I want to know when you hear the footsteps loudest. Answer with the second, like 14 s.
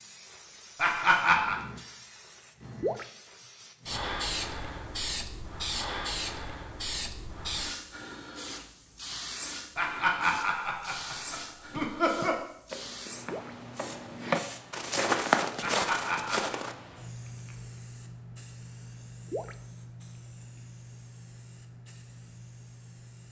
15 s.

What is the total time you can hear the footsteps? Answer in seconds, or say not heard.
5 s.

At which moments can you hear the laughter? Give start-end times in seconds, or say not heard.
0.8-1.6, 9.8-12.4, 15.6-16.6.